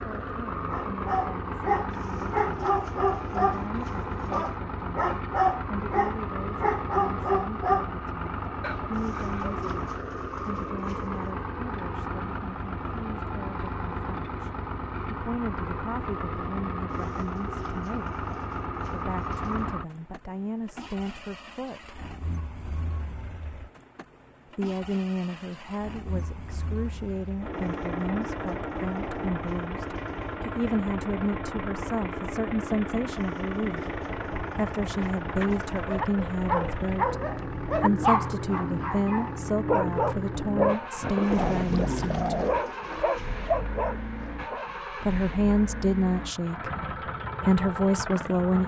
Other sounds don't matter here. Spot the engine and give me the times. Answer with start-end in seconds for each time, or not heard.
0.0-48.6.